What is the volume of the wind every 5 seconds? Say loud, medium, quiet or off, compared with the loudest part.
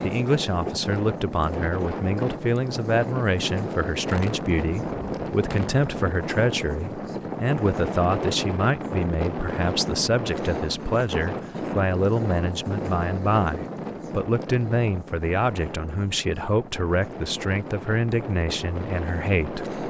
loud, loud, loud, medium.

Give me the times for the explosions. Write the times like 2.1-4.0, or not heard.
4.1-6.1.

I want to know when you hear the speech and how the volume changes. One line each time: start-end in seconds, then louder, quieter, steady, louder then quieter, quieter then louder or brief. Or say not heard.
0.0-19.8 steady.